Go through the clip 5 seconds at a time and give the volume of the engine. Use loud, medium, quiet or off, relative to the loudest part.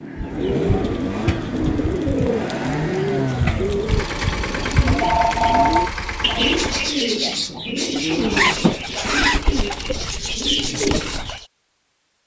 loud, loud, off.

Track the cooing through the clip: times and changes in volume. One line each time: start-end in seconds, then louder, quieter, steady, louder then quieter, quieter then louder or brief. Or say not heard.
0.1-11.4 steady.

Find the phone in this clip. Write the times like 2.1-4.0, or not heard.
4.8-6.7.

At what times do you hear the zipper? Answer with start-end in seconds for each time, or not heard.
8.3-9.4.